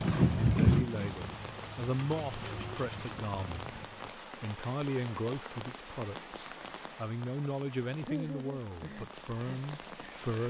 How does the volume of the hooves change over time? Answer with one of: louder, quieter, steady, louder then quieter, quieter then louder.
quieter.